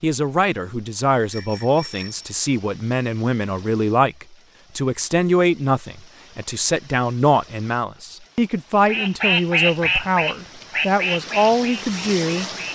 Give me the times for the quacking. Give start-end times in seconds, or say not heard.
8.8-12.6.